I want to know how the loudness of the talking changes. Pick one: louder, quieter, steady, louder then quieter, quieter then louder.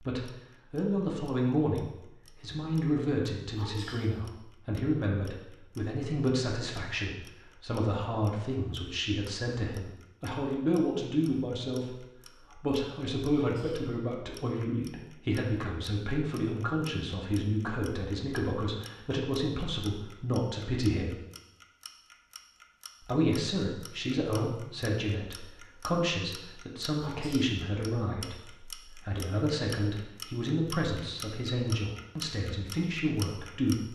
steady.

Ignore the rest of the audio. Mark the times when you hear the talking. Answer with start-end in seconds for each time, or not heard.
0.0-11.9, 12.6-21.1, 23.0-33.9.